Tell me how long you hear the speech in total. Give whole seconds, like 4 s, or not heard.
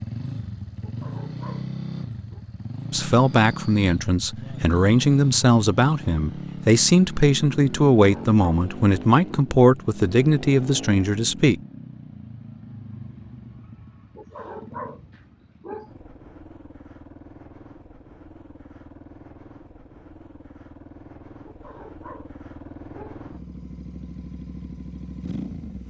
9 s.